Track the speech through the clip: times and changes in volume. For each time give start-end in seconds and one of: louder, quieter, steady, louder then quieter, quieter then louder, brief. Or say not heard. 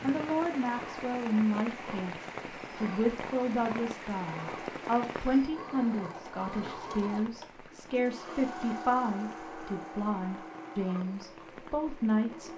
0.0-12.5 steady.